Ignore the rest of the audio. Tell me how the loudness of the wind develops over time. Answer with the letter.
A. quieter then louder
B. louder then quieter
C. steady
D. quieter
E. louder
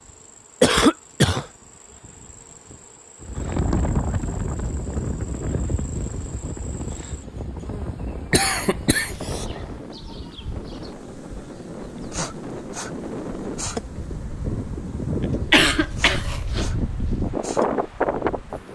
A.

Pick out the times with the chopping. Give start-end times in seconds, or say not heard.
not heard.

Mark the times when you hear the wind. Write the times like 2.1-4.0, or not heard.
3.2-18.6.